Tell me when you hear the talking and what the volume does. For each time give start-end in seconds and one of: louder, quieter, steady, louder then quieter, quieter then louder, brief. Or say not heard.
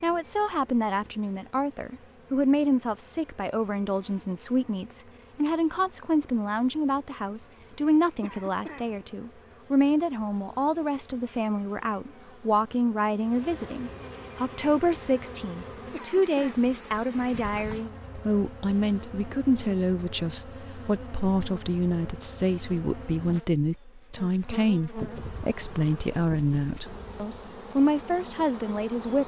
0.0-29.2 steady.